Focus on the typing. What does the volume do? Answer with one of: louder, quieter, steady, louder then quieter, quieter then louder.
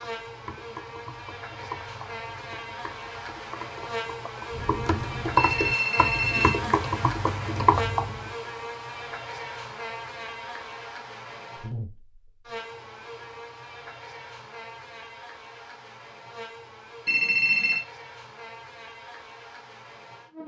quieter then louder.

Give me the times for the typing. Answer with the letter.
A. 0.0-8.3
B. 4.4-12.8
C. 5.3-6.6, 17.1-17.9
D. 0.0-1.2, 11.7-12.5
A.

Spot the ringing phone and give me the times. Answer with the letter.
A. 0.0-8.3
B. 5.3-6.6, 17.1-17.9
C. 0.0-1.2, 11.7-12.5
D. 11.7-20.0
B.